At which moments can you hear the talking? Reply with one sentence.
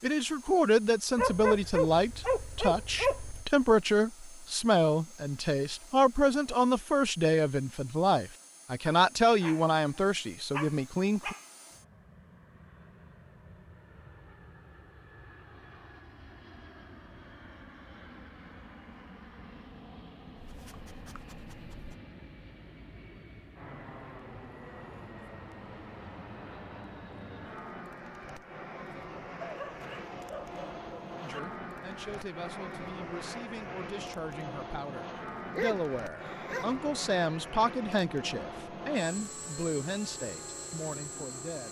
You can hear the talking from 0.0 to 11.3 s and from 31.2 to 41.6 s.